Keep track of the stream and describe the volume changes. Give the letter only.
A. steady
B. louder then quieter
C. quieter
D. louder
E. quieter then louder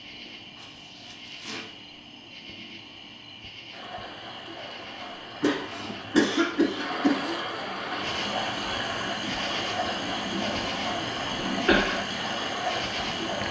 D.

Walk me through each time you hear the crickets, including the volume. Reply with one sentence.
The crickets can be heard from 0.0 to 13.4 s, getting louder.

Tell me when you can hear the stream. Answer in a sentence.
You can hear the stream from 3.7 to 13.4 s.